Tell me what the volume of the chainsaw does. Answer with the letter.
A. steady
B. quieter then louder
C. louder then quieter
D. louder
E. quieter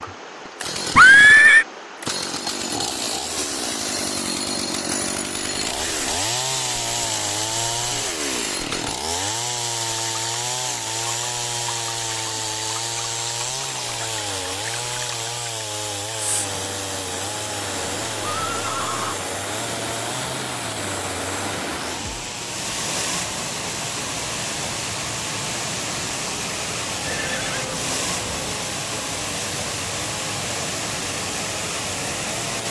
E.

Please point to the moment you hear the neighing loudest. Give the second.
1 s.